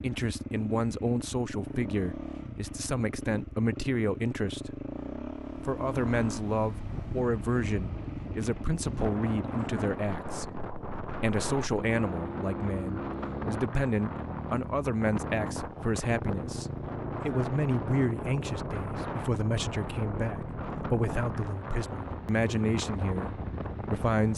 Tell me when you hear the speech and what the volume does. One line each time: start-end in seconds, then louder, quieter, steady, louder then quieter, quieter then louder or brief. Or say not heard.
0.0-4.8 quieter then louder
5.7-24.3 steady.